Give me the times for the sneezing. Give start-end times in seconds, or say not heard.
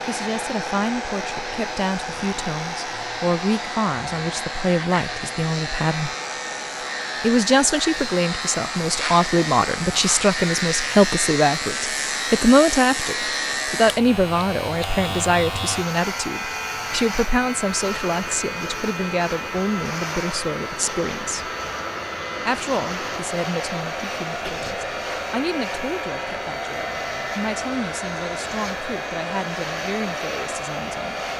24.4-24.8.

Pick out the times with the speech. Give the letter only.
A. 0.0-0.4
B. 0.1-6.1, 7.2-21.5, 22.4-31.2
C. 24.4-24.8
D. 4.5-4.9
B.